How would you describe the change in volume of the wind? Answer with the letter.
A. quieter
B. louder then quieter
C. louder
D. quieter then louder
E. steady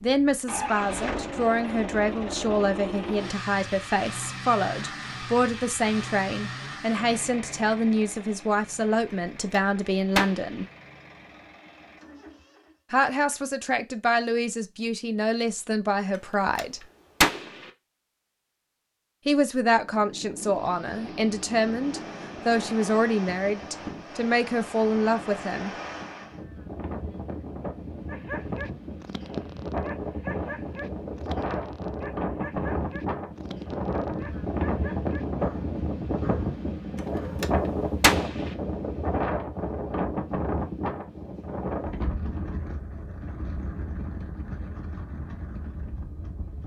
B.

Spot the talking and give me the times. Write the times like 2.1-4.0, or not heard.
0.0-10.7, 12.9-16.8, 19.2-25.7.